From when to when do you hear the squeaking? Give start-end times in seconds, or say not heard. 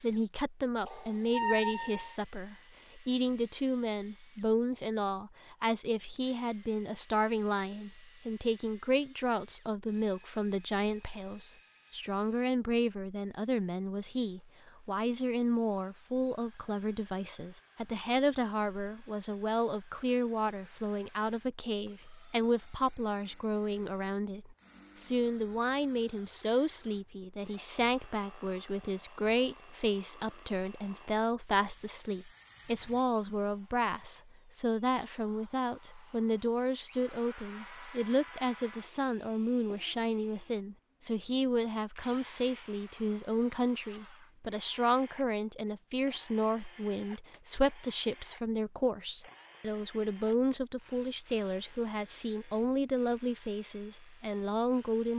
0.8-2.1.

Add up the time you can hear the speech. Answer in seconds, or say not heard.
55 s.